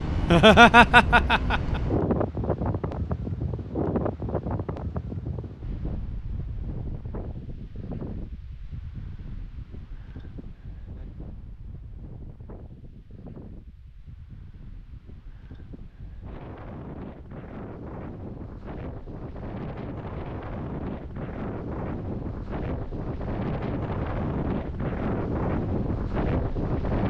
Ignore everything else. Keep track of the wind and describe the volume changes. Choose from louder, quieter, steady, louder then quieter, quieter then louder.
quieter then louder.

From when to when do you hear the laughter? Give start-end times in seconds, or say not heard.
0.1-1.8.